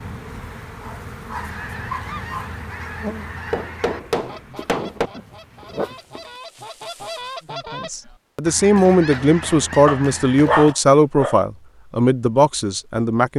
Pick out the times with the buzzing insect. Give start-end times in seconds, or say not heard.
0.0-7.5.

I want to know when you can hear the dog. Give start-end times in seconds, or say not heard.
0.8-2.5, 4.5-6.3, 9.8-11.3.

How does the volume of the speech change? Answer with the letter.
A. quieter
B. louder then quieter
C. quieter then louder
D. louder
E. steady
E.